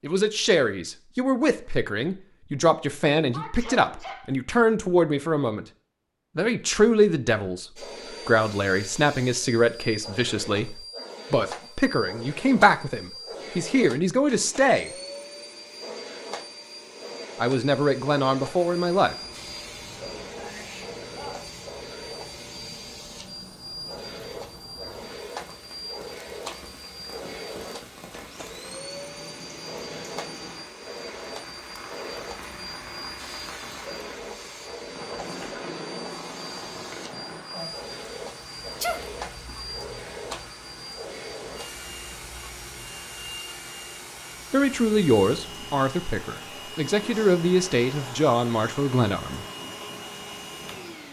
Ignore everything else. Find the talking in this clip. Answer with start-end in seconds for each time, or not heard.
0.0-5.7, 6.3-7.7, 8.2-14.9, 17.4-19.1, 44.5-49.5.